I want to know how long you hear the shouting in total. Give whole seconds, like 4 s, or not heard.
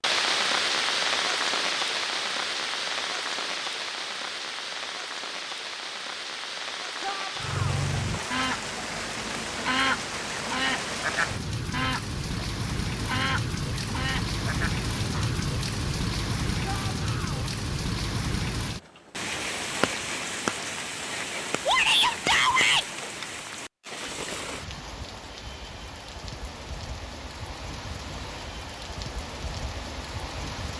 3 s.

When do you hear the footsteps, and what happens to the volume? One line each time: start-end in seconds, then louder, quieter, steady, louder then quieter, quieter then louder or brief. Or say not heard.
not heard.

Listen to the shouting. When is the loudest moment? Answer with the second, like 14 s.
22 s.